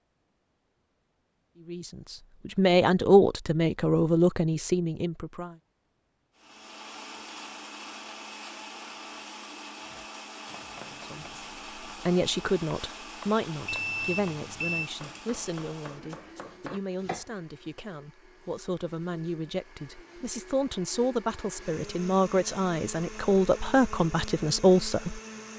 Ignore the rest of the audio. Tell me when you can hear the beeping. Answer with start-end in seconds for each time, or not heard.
13.7-14.9.